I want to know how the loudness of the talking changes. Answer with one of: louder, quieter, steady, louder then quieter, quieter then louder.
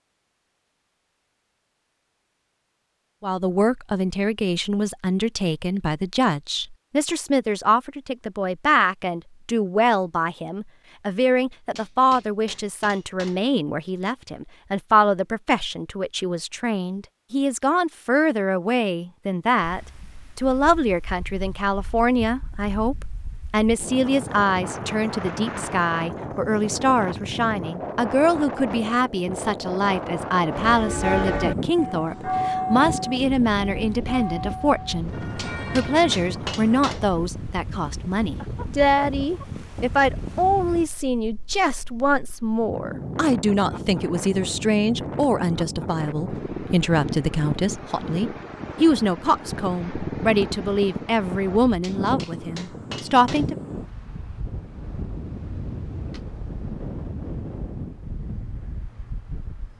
steady.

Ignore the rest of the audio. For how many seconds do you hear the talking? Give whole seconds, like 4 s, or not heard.
50 s.